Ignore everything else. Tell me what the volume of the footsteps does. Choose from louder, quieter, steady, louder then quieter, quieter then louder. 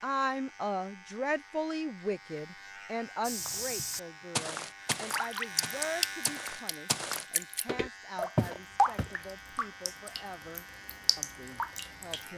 quieter then louder.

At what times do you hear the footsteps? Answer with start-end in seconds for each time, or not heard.
3.2-9.2.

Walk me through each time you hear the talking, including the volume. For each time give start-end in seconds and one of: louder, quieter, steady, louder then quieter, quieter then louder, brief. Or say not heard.
0.0-12.3 quieter.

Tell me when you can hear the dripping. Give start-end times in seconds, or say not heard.
4.9-12.3.